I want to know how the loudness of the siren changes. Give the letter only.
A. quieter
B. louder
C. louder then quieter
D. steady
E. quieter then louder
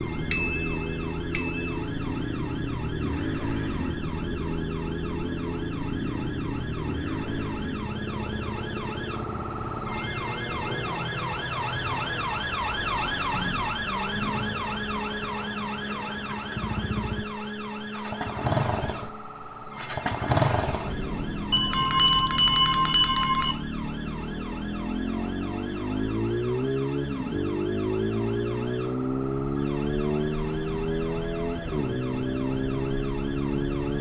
C.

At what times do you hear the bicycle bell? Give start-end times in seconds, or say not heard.
0.3-1.8, 21.5-23.6.